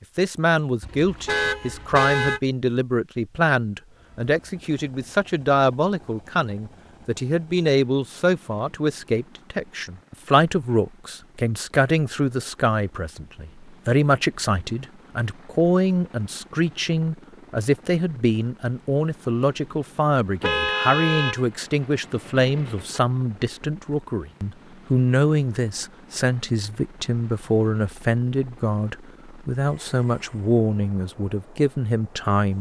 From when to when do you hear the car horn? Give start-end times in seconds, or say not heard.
0.8-2.4, 20.4-23.0.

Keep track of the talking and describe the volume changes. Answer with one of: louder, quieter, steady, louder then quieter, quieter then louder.
steady.